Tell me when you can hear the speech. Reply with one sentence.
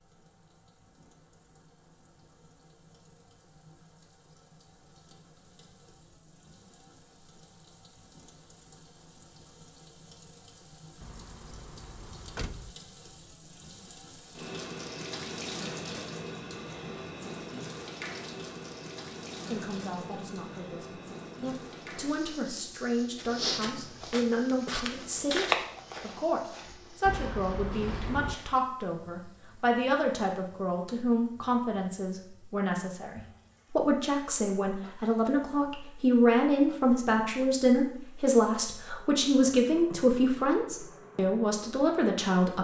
The speech can be heard from 19.5 to 42.5 s.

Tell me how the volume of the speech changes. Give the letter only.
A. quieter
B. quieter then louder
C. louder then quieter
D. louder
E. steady
D.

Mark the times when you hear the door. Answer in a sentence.
You can hear the door from 11.0 to 12.8 s and from 27.1 to 28.4 s.